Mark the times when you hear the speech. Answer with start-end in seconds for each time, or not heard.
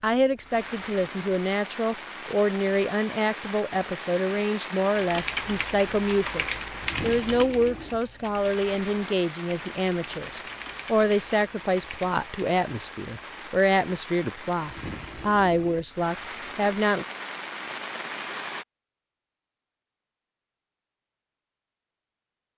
0.0-17.1.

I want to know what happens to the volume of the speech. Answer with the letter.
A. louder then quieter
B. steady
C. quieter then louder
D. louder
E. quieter
B.